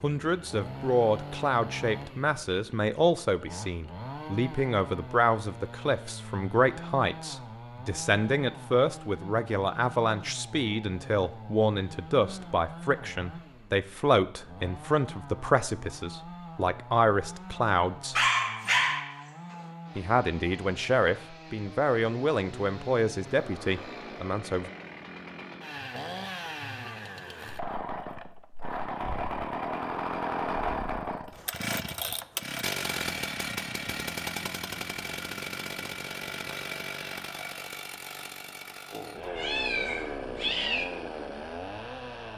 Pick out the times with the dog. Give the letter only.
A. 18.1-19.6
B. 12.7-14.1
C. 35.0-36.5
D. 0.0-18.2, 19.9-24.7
A.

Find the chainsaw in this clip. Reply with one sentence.
The chainsaw can be heard from 0.0 to 42.3 s.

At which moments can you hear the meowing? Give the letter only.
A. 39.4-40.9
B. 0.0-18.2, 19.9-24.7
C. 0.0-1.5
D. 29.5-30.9
A.